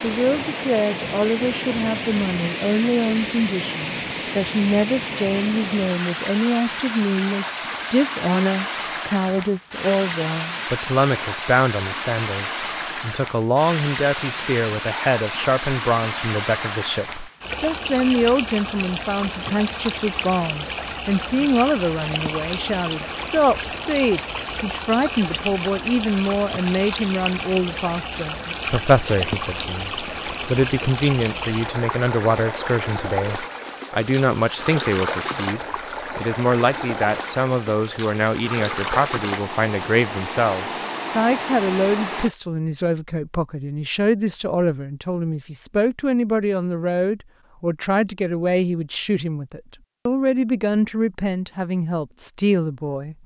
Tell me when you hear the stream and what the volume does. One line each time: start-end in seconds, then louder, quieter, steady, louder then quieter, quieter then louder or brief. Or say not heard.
0.0-42.3 steady.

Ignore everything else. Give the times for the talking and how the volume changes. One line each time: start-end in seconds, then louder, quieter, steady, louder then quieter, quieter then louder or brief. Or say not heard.
0.0-53.2 steady.